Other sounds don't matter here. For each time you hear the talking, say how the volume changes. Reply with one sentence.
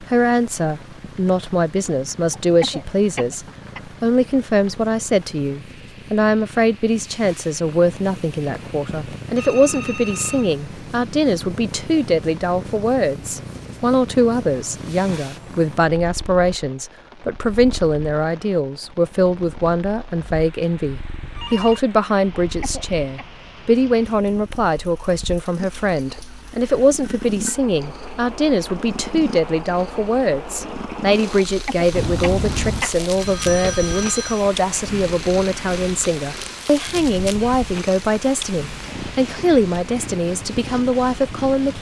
You can hear the talking from 0.0 to 41.7 s, at a steady volume.